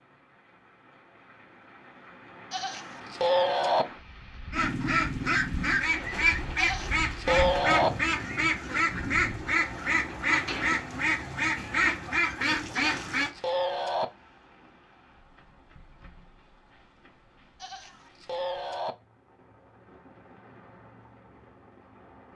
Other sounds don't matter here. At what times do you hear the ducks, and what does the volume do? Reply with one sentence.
You can hear the ducks from 4.5 to 13.3 s, at a steady volume.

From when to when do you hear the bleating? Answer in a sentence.
The bleating can be heard from 2.5 to 3.9 s, from 6.5 to 7.9 s, from 12.7 to 14.1 s and from 17.6 to 18.9 s.